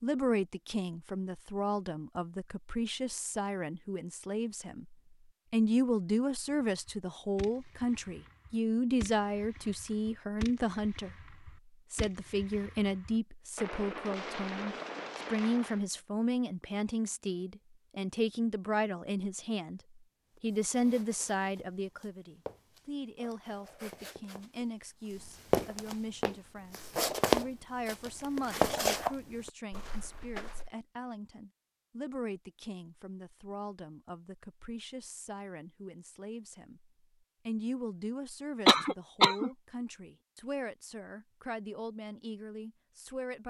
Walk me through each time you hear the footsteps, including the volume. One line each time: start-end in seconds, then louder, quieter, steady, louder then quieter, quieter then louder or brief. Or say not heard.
20.4-30.7 louder.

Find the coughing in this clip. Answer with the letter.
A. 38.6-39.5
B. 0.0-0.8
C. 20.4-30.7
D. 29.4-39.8
A.